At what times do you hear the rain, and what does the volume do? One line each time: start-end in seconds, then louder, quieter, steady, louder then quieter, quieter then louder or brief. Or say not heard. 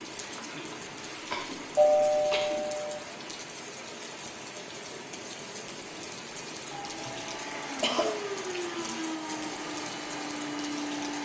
0.0-11.2 steady.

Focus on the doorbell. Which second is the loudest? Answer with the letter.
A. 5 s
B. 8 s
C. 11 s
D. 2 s
D.